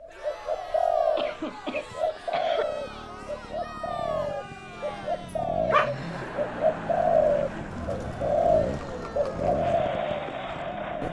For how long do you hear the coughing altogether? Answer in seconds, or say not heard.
2 s.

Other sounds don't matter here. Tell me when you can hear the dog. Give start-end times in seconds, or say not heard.
5.2-6.1.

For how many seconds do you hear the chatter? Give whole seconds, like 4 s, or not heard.
11 s.